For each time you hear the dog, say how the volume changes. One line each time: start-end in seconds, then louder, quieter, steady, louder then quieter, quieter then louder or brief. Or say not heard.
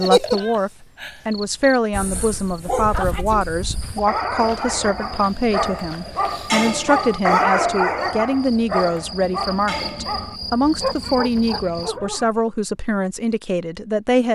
1.9-12.4 louder then quieter.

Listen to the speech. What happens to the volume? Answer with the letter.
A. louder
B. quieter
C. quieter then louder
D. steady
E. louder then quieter
D.